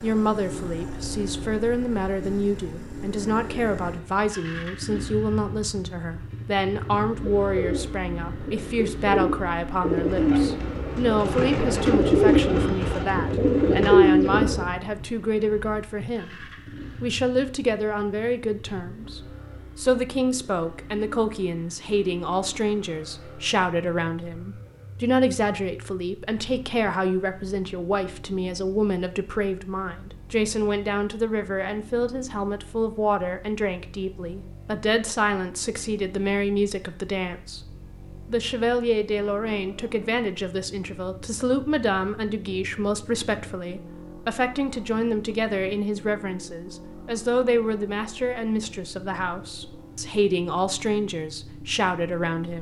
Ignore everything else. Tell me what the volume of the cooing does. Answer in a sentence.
The loudness of the cooing goes up.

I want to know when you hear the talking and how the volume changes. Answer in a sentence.
The talking can be heard from 0.0 to 52.5 s, at a steady volume.